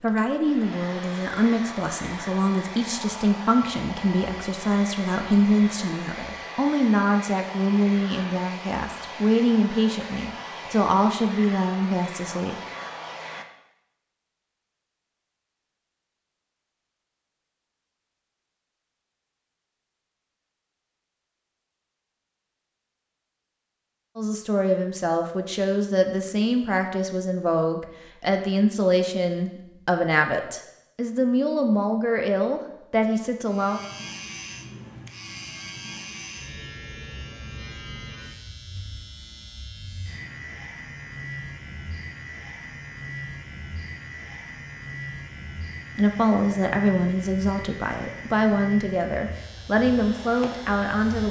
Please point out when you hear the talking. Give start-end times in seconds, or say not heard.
0.0-12.6, 24.1-33.8, 46.0-51.2.